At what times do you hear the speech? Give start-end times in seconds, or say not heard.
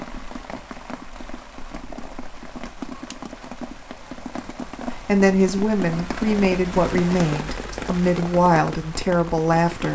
4.9-9.9.